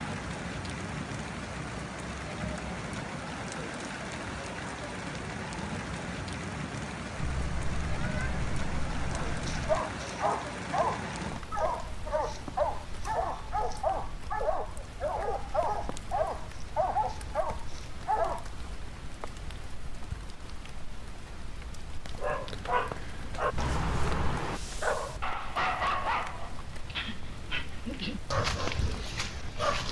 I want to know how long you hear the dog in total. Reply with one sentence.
You can hear the dog for 17 seconds altogether.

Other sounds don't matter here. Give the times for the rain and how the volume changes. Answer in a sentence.
You can hear the rain from 0.0 to 29.8 s, getting quieter.